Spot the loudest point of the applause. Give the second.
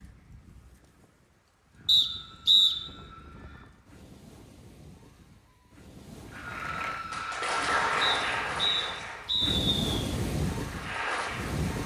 8 s.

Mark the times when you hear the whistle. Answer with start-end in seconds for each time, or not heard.
1.9-2.8, 8.0-9.8.